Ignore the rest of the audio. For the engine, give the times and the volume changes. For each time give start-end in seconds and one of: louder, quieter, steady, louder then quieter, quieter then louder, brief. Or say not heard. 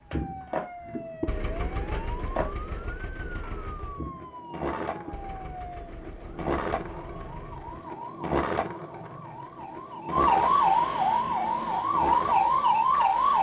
0.0-7.9 quieter.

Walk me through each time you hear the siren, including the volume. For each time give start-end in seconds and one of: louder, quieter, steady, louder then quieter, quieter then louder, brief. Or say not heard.
0.0-13.3 louder.